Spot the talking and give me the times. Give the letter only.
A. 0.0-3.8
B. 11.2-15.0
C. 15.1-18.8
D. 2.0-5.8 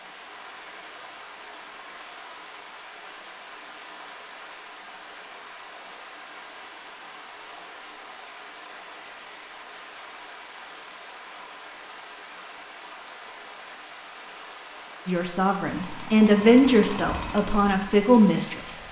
C.